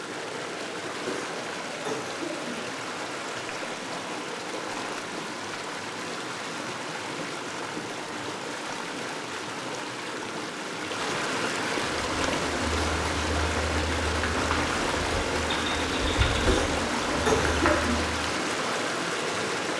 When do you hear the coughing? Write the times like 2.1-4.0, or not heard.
1.1-2.5, 16.4-18.0.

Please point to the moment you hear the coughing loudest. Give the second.
17 s.